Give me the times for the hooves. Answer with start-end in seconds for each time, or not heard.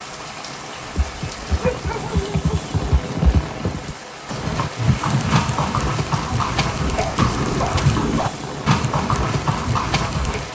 0.9-10.4.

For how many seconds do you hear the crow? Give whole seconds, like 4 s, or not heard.
not heard.